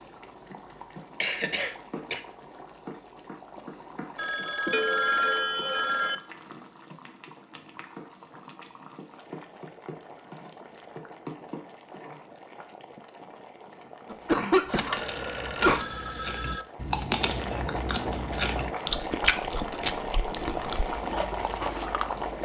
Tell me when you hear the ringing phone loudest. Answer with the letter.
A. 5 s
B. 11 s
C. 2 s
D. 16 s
A.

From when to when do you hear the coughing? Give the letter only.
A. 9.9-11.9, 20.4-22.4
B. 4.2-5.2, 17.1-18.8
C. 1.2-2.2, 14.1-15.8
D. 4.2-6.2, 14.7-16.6
C.